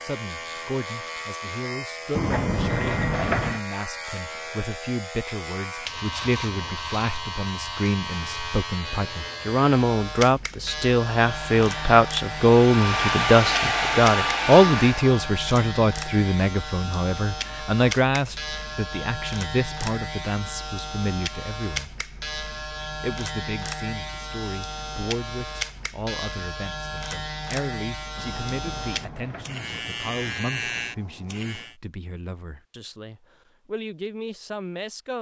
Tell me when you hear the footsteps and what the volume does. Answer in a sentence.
You can't hear the footsteps here.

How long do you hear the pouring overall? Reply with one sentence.
You can hear the pouring for 3 seconds altogether.